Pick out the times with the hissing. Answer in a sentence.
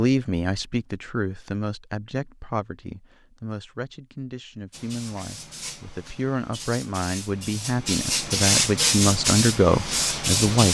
The hissing can be heard from 4.7 to 10.6 s.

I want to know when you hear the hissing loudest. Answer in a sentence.
The loudest moment of the hissing is at 9 seconds.